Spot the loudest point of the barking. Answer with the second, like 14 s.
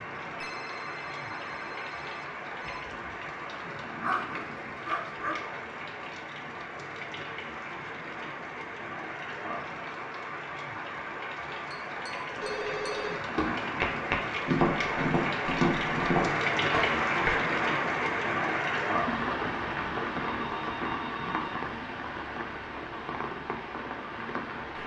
4 s.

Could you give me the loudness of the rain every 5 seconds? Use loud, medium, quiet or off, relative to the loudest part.
medium, medium, medium, loud, medium.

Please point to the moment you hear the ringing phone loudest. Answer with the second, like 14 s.
13 s.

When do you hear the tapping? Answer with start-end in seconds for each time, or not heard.
11.7-17.4.